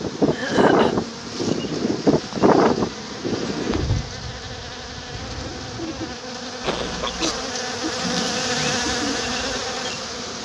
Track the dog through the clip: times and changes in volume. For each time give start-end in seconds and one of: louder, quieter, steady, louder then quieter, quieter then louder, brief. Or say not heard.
not heard.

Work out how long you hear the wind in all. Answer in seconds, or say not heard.
6 s.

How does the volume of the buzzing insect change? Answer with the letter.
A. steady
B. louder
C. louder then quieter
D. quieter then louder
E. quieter
B.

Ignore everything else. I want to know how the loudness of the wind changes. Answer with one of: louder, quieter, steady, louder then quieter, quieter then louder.
quieter.